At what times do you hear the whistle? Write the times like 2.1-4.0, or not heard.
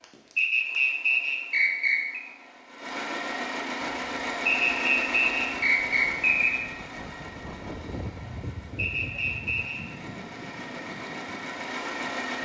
0.3-2.2, 4.5-6.5, 8.8-9.8.